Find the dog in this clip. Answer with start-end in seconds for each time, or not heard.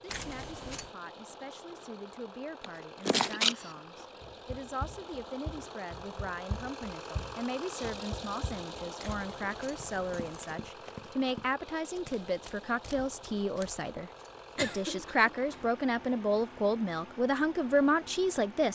not heard.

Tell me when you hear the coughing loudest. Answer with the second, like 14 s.
3 s.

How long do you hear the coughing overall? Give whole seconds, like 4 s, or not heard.
2 s.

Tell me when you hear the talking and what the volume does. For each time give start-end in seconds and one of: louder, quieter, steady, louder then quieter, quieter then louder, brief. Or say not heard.
0.0-18.6 louder.